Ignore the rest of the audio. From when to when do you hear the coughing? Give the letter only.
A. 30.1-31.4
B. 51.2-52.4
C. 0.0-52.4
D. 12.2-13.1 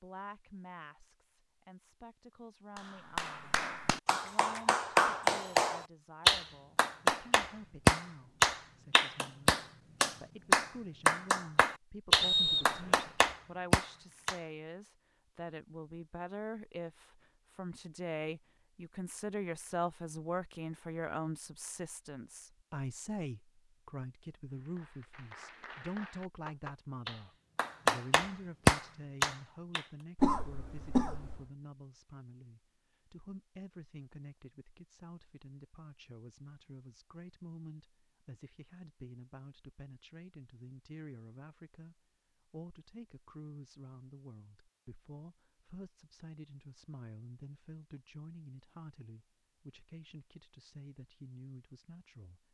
A.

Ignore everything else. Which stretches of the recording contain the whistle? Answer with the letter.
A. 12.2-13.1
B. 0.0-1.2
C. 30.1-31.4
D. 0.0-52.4
A.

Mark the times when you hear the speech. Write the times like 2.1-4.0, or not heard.
0.0-52.4.